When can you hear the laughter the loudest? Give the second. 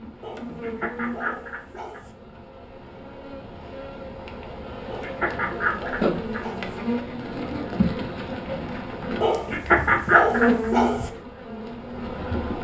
10 s.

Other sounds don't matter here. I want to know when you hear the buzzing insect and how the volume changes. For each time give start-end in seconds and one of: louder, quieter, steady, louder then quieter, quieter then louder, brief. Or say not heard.
0.0-12.5 louder.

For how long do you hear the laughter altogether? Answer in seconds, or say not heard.
4 s.